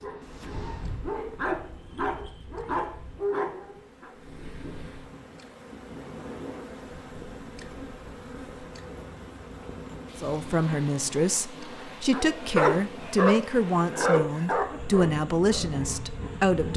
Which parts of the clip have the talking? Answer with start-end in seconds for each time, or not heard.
10.2-16.7.